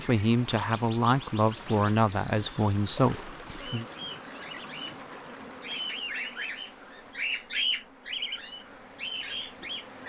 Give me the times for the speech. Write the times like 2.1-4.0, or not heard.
0.0-3.9.